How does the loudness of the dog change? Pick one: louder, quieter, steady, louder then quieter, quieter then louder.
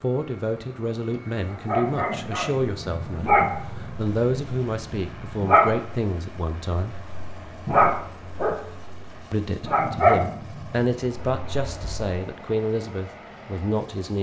louder then quieter.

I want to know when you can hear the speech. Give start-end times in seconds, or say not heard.
0.0-7.0, 9.3-14.1.